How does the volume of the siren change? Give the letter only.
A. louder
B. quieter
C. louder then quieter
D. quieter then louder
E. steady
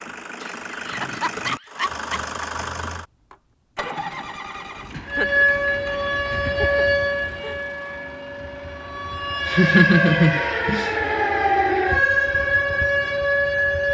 D.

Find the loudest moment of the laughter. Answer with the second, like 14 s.
10 s.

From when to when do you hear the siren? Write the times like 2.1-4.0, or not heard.
5.0-13.9.